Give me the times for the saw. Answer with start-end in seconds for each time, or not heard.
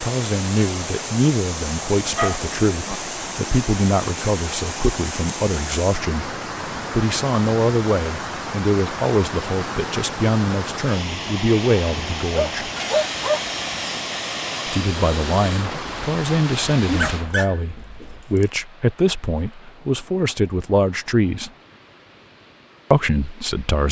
12.8-15.7.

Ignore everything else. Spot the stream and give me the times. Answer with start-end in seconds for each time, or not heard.
0.0-23.8.